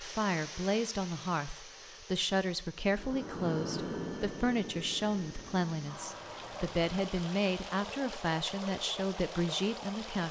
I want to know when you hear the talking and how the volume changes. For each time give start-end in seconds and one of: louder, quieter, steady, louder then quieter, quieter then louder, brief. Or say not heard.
0.0-10.2 steady.